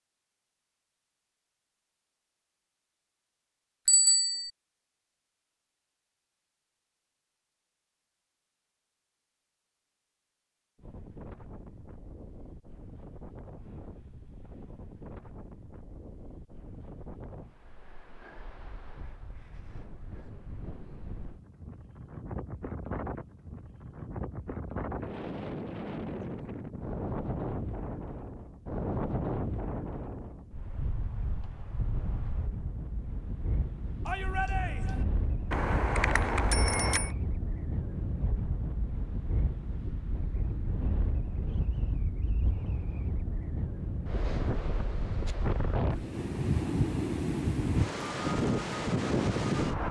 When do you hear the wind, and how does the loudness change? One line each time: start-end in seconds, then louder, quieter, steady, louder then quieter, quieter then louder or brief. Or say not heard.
10.8-49.8 louder.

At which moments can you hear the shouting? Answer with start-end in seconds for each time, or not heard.
34.0-35.0.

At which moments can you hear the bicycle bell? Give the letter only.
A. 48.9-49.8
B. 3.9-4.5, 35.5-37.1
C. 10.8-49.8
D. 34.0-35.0
B.